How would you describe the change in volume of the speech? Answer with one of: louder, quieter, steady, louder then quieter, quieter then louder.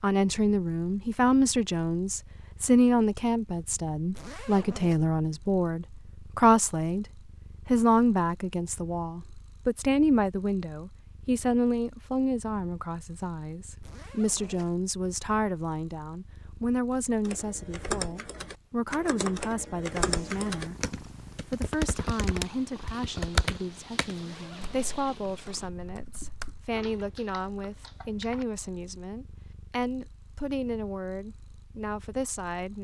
quieter.